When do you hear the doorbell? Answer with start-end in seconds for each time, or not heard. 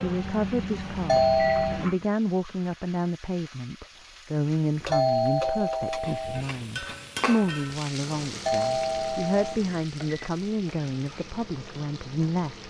1.1-1.8, 4.9-6.5, 8.4-9.4.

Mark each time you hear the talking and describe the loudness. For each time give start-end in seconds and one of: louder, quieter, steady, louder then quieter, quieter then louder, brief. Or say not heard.
0.0-12.6 steady.